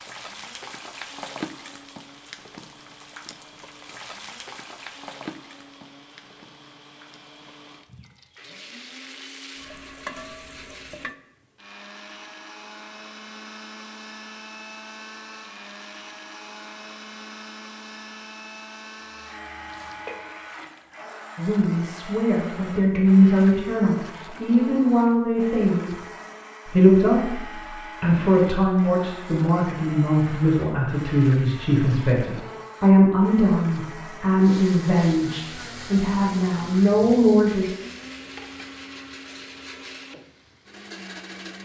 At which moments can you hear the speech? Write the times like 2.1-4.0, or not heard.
21.4-25.9, 26.6-27.4, 28.0-37.6.